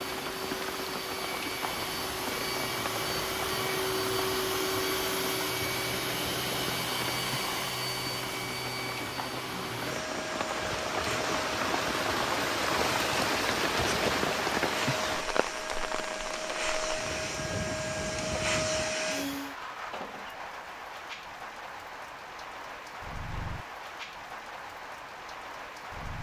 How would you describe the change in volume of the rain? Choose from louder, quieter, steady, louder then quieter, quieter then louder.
louder then quieter.